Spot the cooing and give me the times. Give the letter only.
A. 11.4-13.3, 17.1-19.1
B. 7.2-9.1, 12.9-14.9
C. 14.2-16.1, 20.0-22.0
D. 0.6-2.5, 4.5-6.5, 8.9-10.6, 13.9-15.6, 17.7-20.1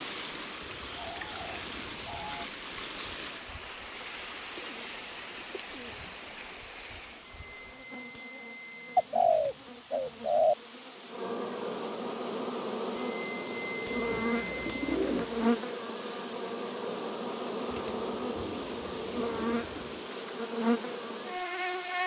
D.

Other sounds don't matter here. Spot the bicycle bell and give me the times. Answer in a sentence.
The bicycle bell can be heard from 7.2 to 9.1 s and from 12.9 to 14.9 s.